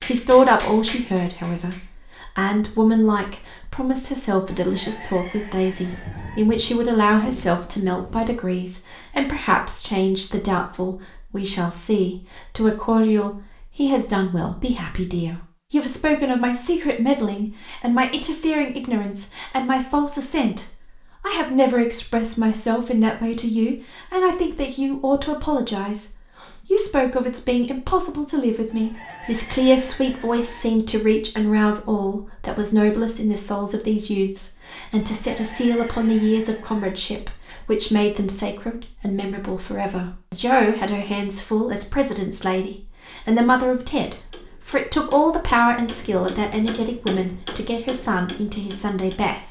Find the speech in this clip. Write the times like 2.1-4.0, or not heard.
0.0-49.4.